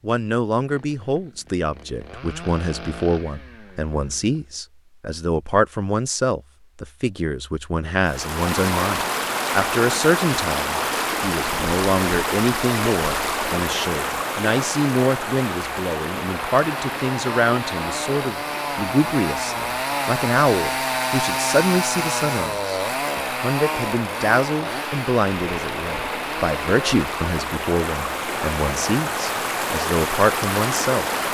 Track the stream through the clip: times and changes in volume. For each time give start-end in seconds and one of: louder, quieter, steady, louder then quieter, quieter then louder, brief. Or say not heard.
8.0-31.2 quieter then louder.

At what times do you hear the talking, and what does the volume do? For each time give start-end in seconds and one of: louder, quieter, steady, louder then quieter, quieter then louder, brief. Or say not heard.
0.0-31.1 steady.